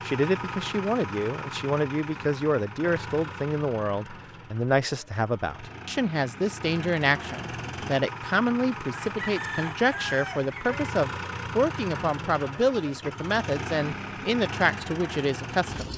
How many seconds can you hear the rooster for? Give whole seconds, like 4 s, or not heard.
2 s.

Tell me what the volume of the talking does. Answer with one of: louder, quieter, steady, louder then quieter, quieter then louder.
steady.